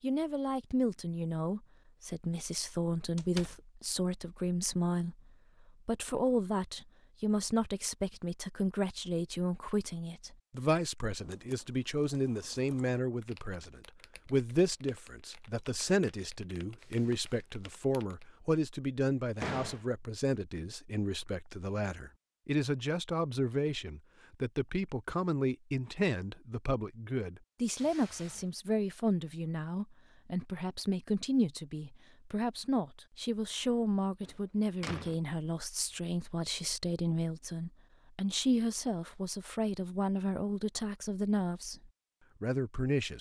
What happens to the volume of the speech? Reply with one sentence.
The loudness of the speech stays about the same.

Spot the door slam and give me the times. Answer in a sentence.
You can hear the door slam from 3.1 to 3.6 s, from 19.4 to 19.9 s and from 34.2 to 35.1 s.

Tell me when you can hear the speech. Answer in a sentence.
You can hear the speech from 0.0 to 43.1 s.